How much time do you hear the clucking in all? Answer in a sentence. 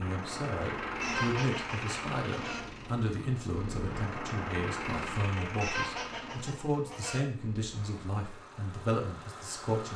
The clucking can be heard for 3 seconds in total.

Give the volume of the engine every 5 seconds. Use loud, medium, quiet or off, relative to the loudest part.
loud, medium.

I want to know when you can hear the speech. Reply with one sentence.
You can hear the speech from 0.0 to 9.9 s.